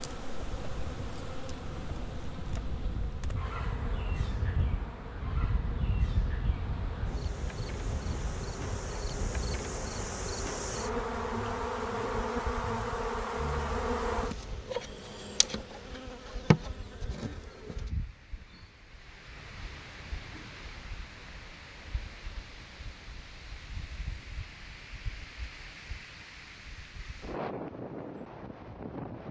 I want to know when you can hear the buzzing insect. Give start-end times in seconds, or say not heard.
0.0-17.9.